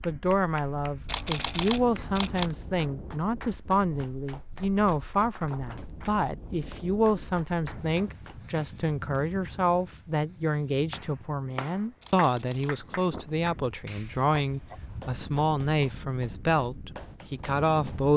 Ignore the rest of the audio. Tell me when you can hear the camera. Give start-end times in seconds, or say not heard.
1.1-2.5, 12.0-12.8.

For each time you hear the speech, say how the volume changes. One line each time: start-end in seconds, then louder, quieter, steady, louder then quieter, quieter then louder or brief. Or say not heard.
0.0-18.1 steady.